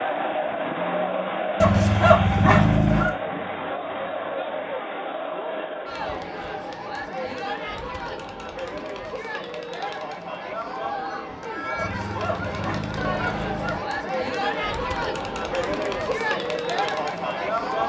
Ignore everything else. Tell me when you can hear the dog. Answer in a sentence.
You can hear the dog from 1.6 to 3.1 s and from 11.8 to 13.8 s.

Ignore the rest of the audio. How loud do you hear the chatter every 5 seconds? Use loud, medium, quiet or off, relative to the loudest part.
loud, medium, loud, loud.